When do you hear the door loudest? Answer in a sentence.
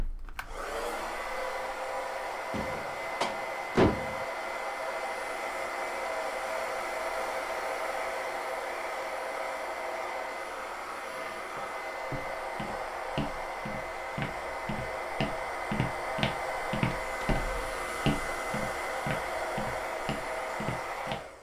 The loudest moment of the door is at 4 seconds.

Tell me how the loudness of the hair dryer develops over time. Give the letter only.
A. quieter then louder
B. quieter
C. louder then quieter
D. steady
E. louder
D.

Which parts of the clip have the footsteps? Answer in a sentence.
You can hear the footsteps from 11.6 to 21.2 s.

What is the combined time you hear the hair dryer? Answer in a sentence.
The hair dryer can be heard for 21 seconds in total.